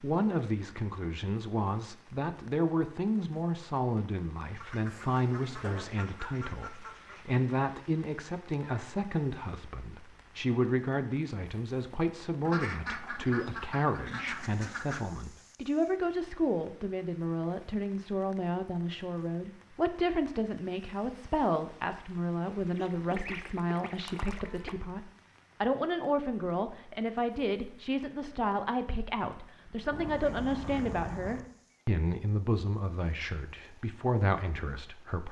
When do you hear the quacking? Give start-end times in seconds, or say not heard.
4.5-7.2, 12.4-15.0, 22.8-24.8, 29.9-31.5.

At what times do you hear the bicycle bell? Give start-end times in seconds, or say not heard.
not heard.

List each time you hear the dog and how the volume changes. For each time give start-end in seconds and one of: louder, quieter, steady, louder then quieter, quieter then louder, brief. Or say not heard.
not heard.